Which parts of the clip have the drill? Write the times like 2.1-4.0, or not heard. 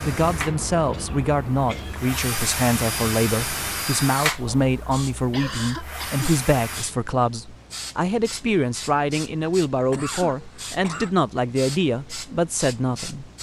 0.0-6.9.